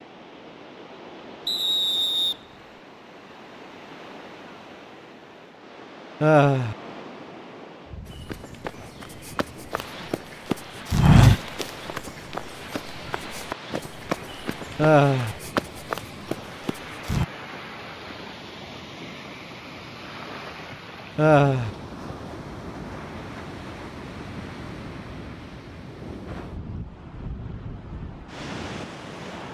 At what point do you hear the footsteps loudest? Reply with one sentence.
The volume of the footsteps peaks at 11 seconds.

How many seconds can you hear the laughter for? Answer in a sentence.
The laughter can be heard for 2 seconds in total.